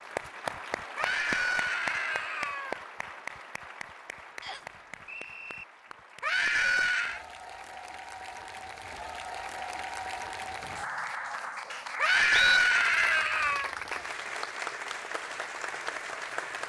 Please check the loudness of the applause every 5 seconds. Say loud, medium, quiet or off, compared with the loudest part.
loud, medium, loud, loud.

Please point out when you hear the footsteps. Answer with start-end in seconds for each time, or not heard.
not heard.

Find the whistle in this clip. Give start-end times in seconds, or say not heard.
4.4-5.7, 10.6-12.6.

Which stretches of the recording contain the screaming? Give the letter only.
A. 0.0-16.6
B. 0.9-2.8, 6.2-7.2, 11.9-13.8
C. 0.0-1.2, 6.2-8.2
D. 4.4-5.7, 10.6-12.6
B.